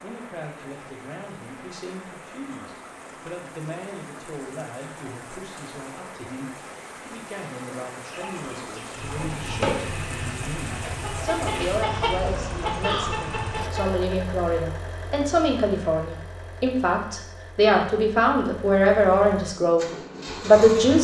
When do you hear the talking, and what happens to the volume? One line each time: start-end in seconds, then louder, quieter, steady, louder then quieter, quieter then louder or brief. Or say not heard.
0.0-20.9 louder.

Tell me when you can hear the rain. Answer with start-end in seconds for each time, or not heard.
0.0-13.7.